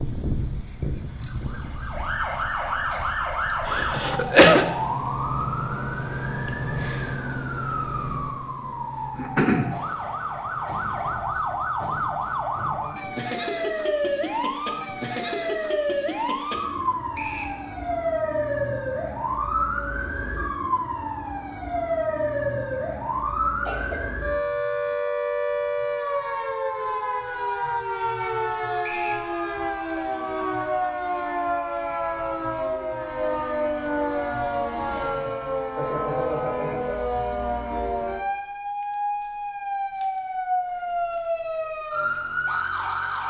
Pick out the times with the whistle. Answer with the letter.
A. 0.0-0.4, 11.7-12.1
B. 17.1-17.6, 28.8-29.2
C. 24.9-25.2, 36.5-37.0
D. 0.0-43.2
B.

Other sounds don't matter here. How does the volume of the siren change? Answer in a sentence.
The loudness of the siren stays about the same.